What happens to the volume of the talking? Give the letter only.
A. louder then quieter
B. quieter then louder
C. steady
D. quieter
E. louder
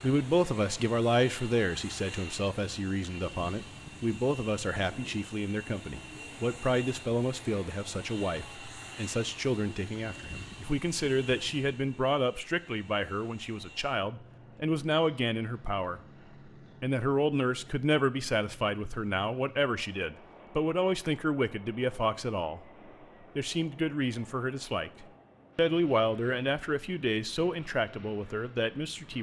C.